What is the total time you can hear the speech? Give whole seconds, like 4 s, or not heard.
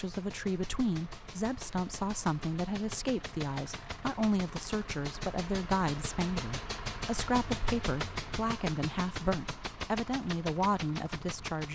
12 s.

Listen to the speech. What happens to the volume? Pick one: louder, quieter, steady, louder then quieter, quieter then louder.
steady.